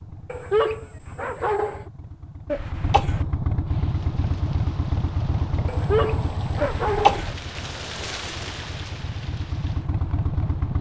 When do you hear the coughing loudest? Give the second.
7 s.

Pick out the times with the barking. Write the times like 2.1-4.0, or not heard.
0.3-1.9, 5.7-7.2.